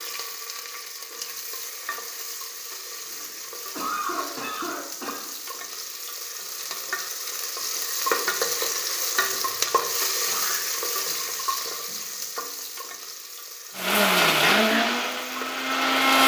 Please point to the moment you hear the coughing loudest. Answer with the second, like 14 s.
4 s.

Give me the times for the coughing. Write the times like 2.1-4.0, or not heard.
3.0-5.3, 10.2-12.2.